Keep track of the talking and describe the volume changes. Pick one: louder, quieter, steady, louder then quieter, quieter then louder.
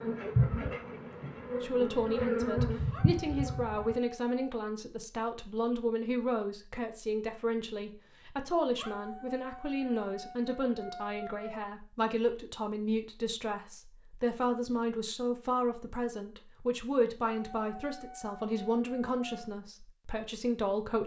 steady.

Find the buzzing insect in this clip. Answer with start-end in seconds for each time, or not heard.
0.0-4.0.